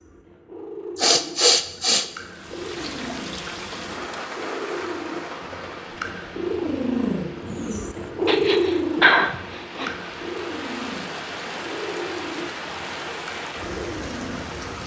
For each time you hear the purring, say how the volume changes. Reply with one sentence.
The purring can be heard from 0.0 to 14.7 s, getting louder then quieter.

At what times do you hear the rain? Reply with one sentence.
The rain can be heard from 2.2 to 14.8 s.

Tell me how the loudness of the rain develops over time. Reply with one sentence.
The loudness of the rain goes down, then up.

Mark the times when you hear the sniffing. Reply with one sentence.
The sniffing can be heard from 0.9 to 2.0 s and from 8.2 to 9.9 s.